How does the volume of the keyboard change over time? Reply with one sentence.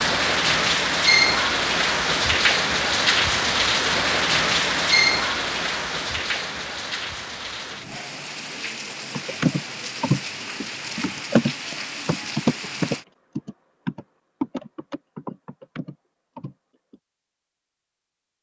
The volume of the keyboard goes down.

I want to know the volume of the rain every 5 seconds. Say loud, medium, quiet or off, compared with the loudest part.
loud, medium, quiet, off.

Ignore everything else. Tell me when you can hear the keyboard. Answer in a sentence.
The keyboard can be heard from 9.1 to 17.0 s.